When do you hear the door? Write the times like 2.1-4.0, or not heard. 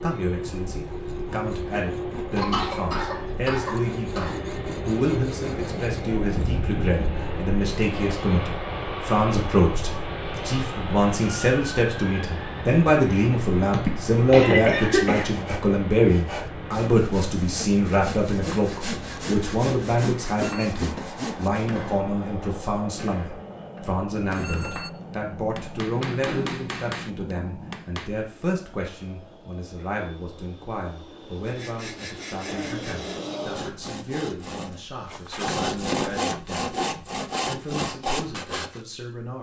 26.1-26.6.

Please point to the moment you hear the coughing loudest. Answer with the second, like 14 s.
15 s.